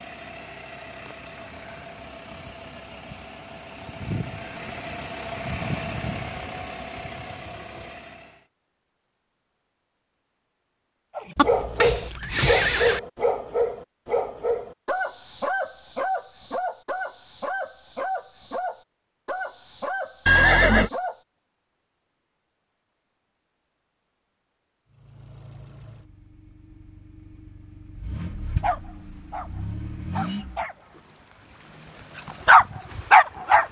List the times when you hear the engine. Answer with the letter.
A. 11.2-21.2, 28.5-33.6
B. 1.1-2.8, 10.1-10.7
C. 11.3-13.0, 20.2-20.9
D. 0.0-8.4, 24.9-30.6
D.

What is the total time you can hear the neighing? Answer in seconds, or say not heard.
2 s.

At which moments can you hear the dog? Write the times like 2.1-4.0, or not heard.
11.2-21.2, 28.5-33.6.